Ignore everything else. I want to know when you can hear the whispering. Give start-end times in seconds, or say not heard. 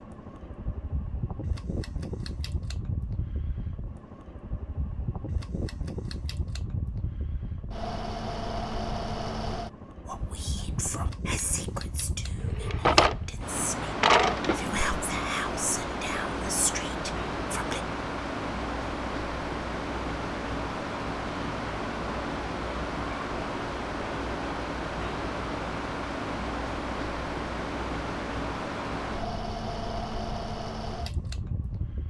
10.1-17.8.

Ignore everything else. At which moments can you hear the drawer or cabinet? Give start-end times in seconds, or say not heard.
12.4-14.7.